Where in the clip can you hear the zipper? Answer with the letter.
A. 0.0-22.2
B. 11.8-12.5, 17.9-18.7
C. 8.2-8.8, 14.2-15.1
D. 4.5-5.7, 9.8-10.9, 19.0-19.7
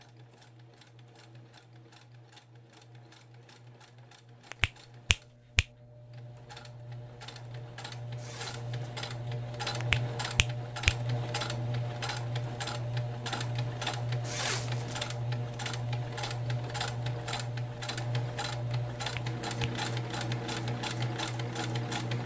C.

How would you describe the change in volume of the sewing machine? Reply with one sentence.
The volume of the sewing machine goes up.